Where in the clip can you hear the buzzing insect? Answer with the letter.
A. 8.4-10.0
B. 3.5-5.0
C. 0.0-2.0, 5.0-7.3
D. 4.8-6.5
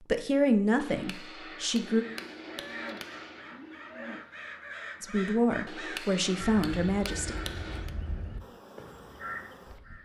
A.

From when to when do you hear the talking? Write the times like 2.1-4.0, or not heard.
0.0-2.0, 5.0-7.3.